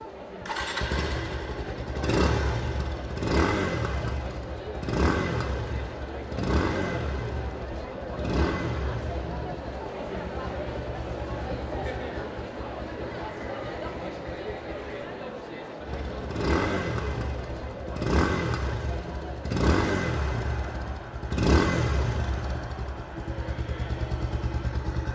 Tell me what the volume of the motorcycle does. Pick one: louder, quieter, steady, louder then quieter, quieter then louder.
quieter then louder.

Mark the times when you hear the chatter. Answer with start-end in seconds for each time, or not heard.
0.0-24.8.